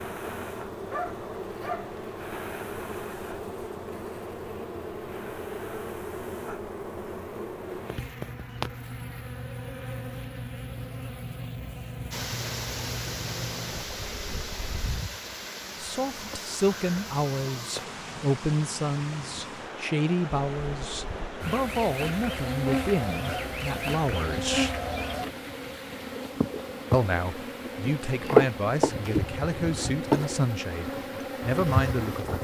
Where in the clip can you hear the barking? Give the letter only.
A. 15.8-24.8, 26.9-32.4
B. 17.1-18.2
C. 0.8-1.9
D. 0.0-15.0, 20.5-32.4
C.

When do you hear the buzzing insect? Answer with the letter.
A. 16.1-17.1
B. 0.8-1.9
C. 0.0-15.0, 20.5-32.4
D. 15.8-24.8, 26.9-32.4
C.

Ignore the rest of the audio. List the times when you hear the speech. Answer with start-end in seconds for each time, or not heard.
15.8-24.8, 26.9-32.4.